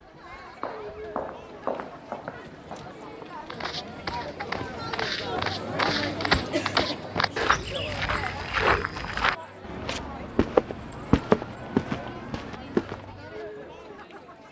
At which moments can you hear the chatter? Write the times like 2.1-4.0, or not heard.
0.0-14.4.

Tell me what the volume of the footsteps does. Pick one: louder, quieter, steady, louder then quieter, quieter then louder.
louder.